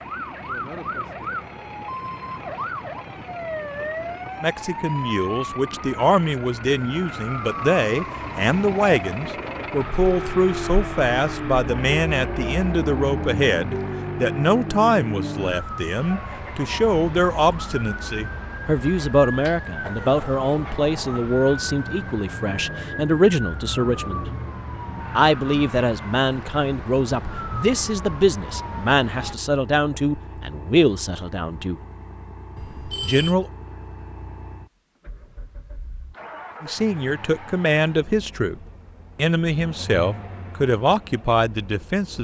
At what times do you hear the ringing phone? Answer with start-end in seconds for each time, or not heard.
32.5-33.4.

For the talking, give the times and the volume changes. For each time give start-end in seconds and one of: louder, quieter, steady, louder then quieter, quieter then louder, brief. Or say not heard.
4.4-24.2 steady
25.1-31.8 steady
33.0-33.5 brief
36.6-42.2 steady.